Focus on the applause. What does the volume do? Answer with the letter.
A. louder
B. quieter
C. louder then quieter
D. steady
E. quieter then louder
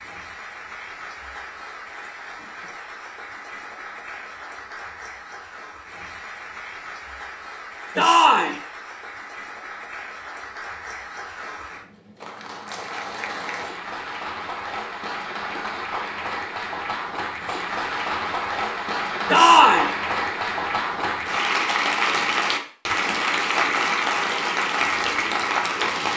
A.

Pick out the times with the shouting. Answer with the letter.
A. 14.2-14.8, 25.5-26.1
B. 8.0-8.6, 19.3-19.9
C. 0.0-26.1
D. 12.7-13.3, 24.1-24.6
B.